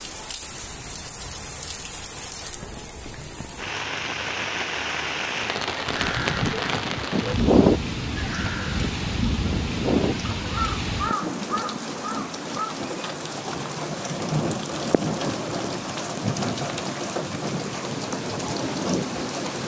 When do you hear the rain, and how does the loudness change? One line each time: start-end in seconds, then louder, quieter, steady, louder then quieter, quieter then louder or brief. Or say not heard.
0.0-19.6 louder.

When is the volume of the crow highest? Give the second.
8 s.